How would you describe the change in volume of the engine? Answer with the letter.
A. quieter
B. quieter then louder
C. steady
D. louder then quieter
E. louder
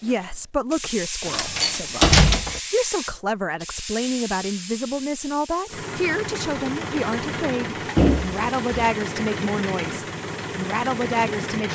C.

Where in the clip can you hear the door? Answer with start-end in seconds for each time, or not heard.
1.2-2.6, 8.0-8.9.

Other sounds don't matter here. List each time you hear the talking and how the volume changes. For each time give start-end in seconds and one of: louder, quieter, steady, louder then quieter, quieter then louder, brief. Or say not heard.
0.0-11.6 steady.